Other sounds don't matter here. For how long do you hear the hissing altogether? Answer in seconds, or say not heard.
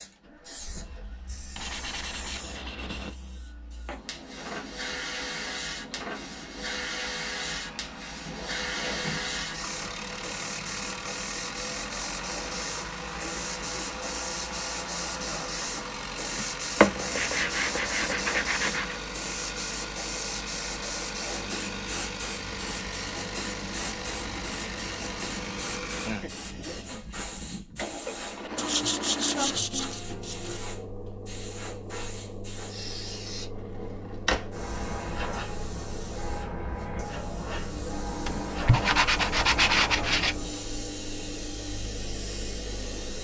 43 s.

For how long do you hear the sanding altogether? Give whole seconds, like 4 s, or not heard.
8 s.